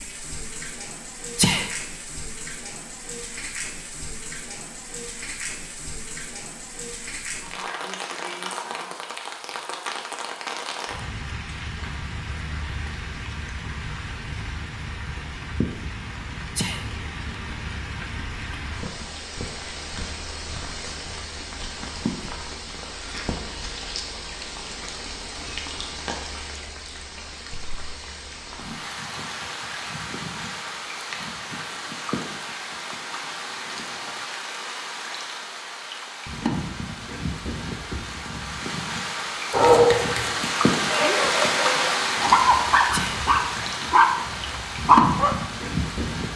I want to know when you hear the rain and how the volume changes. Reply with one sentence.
You can hear the rain from 0.0 to 46.3 s, getting louder.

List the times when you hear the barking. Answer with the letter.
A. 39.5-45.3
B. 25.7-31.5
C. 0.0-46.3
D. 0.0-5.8
A.